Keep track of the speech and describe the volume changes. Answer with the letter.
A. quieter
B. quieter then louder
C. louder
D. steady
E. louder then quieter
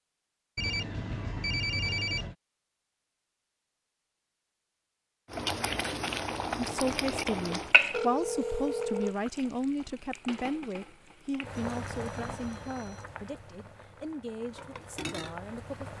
A.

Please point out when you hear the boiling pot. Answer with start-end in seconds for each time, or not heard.
5.3-15.9.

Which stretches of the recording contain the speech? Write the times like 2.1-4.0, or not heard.
6.5-15.9.